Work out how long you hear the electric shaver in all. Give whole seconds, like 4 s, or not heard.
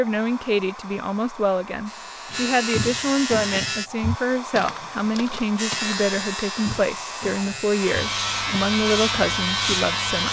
7 s.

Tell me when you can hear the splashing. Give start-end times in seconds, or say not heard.
not heard.